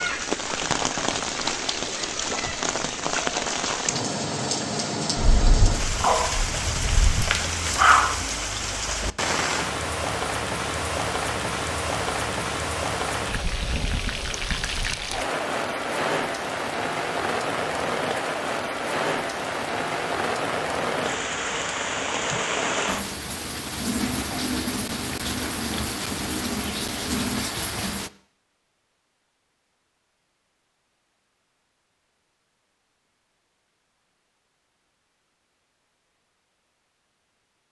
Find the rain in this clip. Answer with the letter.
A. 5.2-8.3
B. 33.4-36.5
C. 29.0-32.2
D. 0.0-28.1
D.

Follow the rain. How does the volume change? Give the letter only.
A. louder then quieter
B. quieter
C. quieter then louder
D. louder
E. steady
E.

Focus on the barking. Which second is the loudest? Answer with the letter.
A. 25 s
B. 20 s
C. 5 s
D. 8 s
D.